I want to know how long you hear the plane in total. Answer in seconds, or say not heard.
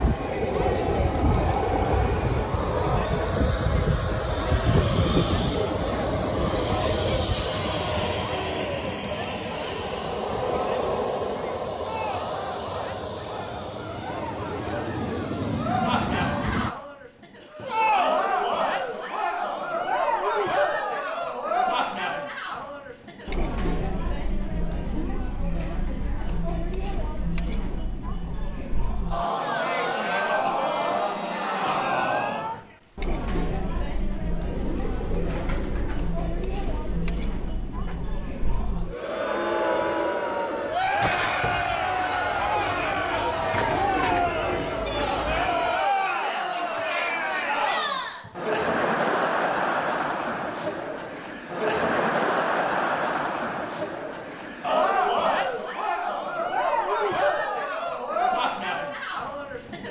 17 s.